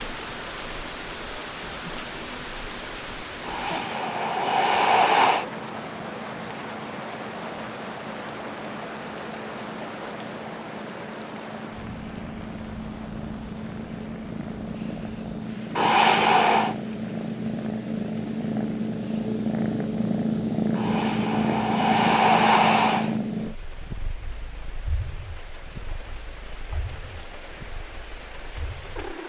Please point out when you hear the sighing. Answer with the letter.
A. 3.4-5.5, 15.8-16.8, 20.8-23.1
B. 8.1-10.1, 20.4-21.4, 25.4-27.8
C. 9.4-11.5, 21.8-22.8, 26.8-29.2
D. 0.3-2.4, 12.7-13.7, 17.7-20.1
A.